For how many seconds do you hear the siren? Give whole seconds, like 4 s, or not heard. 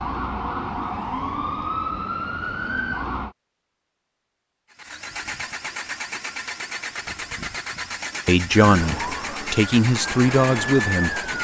6 s.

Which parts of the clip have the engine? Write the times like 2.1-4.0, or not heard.
4.7-11.3.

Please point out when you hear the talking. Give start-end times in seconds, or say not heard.
8.2-11.2.